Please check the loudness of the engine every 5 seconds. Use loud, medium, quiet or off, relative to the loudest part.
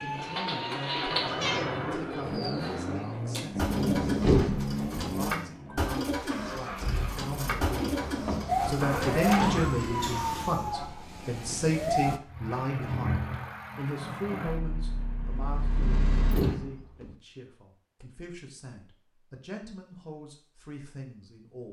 loud, loud, loud, loud, off.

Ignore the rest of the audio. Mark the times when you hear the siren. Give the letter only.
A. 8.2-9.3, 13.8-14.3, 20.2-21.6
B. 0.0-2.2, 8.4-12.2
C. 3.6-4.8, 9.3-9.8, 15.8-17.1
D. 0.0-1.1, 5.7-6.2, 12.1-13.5
B.